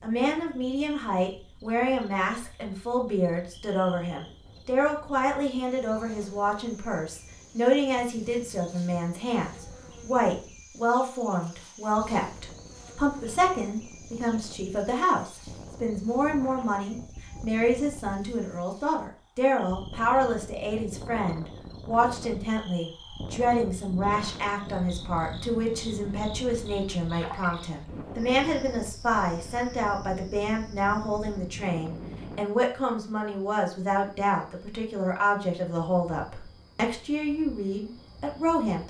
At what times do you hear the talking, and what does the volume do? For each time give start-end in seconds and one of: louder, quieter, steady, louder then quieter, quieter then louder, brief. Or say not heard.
0.0-38.8 steady.